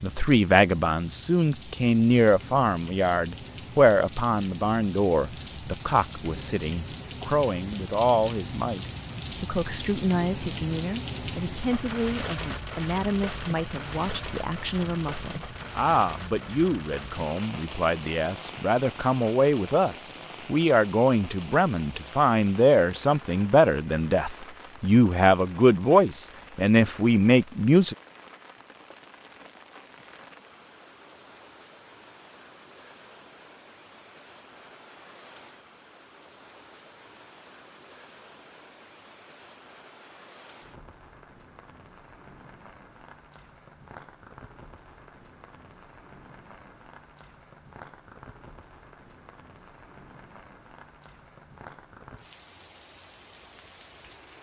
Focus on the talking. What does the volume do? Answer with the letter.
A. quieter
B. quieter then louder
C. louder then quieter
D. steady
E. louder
B.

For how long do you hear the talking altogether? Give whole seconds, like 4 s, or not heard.
28 s.